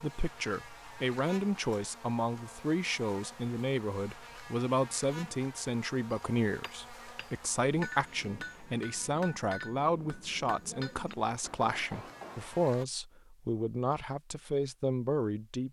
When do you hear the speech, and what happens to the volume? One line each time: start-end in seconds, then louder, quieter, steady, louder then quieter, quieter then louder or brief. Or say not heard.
0.0-15.6 steady.